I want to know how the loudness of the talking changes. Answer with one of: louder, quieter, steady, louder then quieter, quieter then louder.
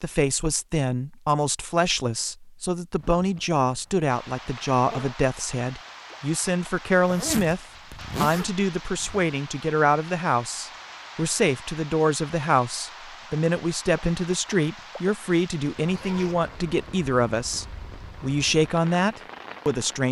steady.